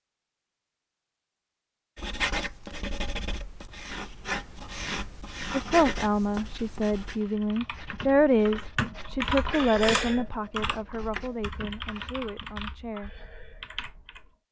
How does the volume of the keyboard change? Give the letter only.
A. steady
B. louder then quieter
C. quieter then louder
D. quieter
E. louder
B.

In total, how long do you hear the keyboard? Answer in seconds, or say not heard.
7 s.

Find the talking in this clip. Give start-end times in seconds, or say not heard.
5.5-13.1.